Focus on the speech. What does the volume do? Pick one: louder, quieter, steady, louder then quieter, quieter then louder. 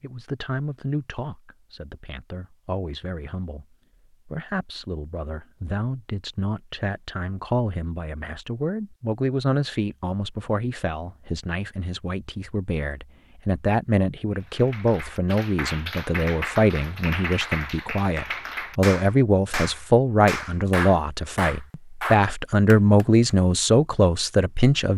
louder.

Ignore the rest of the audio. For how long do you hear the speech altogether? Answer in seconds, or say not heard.
24 s.